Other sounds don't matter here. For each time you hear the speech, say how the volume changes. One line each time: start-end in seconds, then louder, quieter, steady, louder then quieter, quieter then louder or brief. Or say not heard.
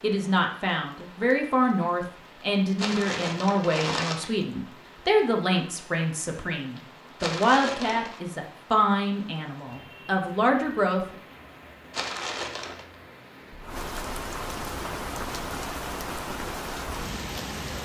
0.0-11.2 steady.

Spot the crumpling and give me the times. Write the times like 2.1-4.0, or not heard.
2.8-4.3, 7.2-8.2, 11.9-12.8.